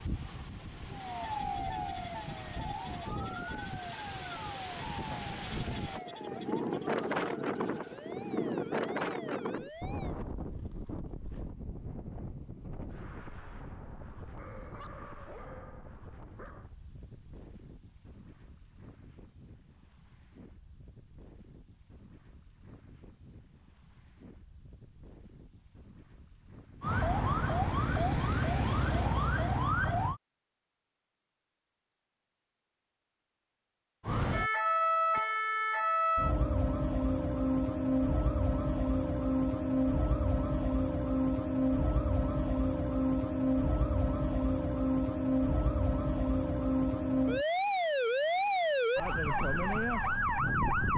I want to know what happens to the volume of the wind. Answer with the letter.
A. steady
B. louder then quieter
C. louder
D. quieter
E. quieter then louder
B.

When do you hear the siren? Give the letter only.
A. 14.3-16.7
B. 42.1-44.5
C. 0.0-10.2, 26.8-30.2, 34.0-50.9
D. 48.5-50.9
C.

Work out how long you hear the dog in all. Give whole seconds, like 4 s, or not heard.
2 s.